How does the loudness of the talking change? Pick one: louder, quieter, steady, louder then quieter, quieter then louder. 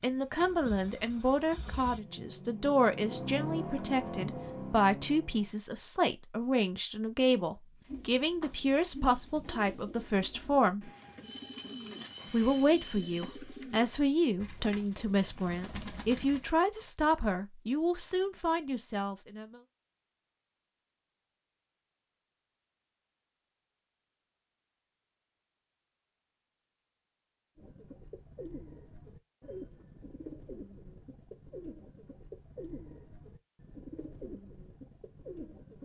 steady.